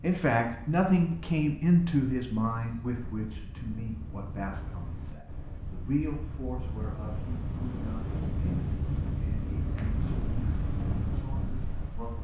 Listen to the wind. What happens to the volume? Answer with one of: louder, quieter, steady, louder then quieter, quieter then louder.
louder.